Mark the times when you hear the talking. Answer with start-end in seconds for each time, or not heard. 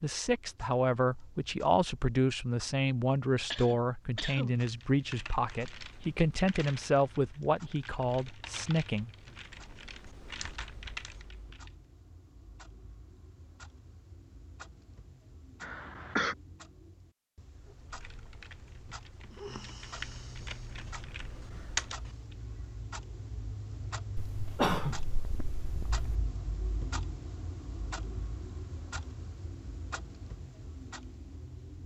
0.0-9.1.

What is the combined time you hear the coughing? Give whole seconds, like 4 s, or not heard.
4 s.